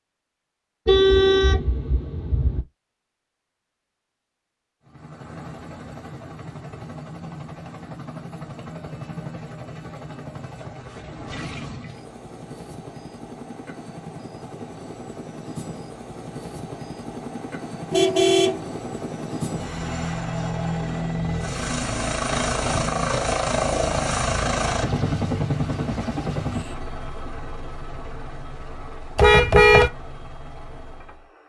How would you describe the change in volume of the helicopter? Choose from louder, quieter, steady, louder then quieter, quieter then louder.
louder then quieter.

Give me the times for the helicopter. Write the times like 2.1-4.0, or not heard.
4.8-31.4.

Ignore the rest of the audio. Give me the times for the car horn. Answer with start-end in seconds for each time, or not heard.
0.8-2.6, 17.9-18.6, 29.1-29.9.